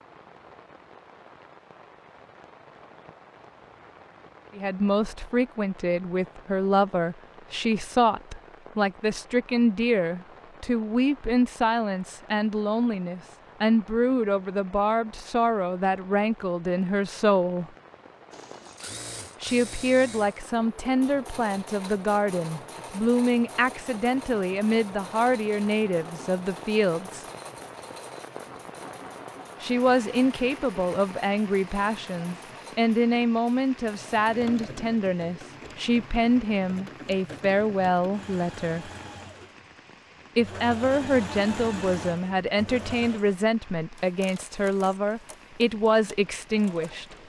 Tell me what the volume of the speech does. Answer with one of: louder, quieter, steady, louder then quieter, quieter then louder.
steady.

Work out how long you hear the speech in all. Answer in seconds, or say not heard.
37 s.